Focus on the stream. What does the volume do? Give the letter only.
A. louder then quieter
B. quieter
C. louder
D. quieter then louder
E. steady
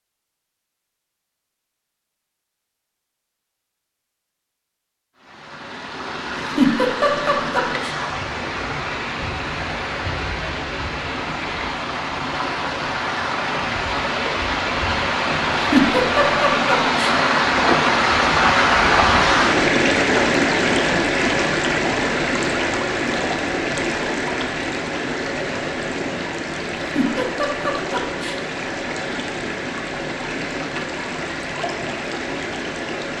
A.